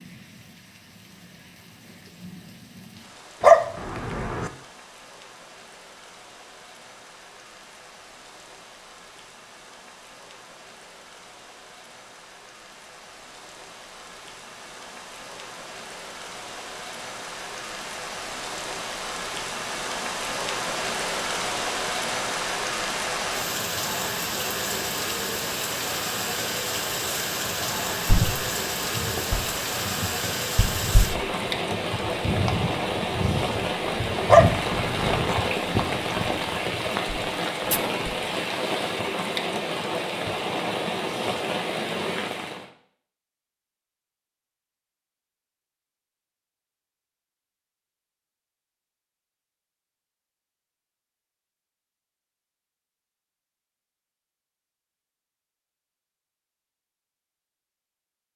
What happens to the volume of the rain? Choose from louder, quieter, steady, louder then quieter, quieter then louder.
louder.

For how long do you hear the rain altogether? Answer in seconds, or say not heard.
43 s.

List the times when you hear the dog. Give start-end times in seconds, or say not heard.
3.4-4.5, 34.2-35.4.